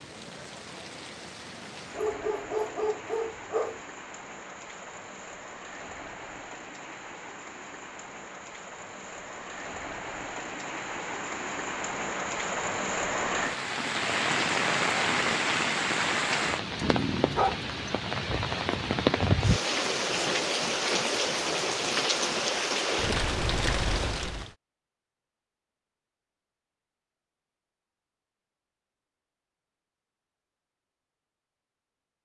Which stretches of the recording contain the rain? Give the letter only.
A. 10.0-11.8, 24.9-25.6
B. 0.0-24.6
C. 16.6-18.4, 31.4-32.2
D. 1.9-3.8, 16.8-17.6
B.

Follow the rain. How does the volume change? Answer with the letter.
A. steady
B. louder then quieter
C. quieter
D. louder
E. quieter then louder
D.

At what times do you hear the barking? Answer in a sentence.
The barking can be heard from 1.9 to 3.8 s and from 16.8 to 17.6 s.